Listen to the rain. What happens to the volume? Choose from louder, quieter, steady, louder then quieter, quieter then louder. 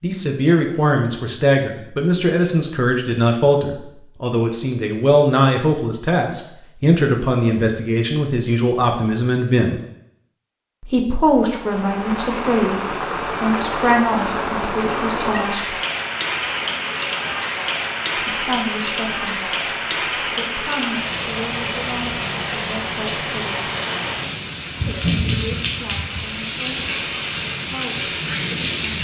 steady.